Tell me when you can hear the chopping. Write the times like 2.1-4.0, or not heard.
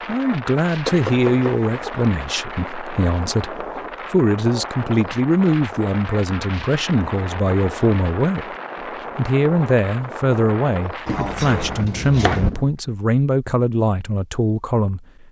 0.8-1.9, 11.1-12.5.